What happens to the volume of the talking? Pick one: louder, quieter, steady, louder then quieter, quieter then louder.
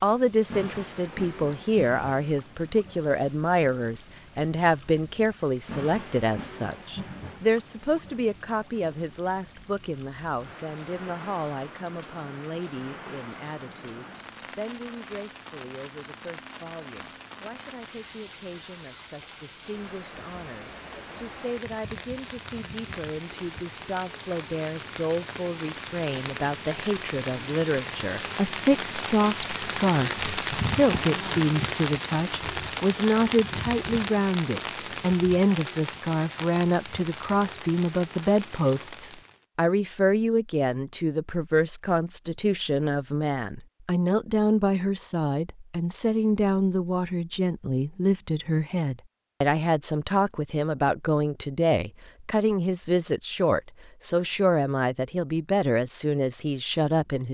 quieter then louder.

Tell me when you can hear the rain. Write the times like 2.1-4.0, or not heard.
0.0-39.5.